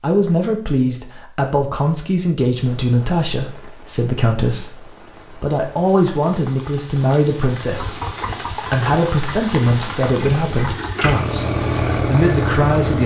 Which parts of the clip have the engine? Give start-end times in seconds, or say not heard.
7.6-13.0.